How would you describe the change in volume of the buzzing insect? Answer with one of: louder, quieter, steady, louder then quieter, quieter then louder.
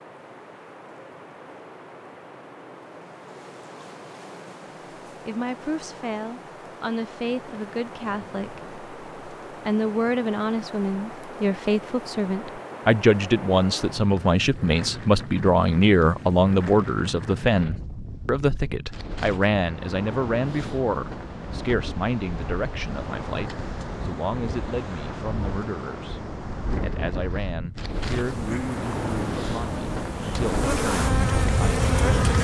louder.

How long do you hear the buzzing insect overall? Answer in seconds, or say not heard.
4 s.